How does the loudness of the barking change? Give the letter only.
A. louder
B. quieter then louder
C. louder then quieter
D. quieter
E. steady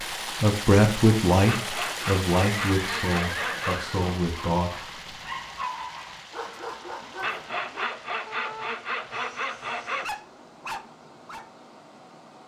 B.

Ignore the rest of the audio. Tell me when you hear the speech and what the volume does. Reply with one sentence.
The speech can be heard from 0.3 to 4.9 s, getting quieter.